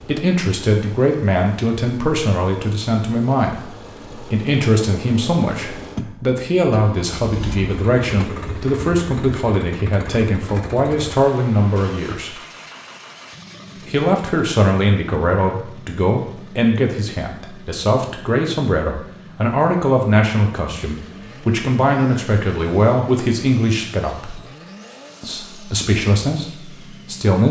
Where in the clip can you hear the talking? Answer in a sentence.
You can hear the talking from 0.0 to 12.3 s, from 13.8 to 24.4 s and from 25.2 to 27.4 s.